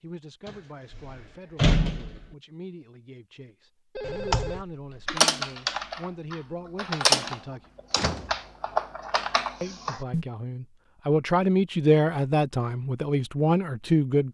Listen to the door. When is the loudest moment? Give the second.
2 s.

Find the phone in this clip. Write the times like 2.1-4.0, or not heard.
4.0-5.2.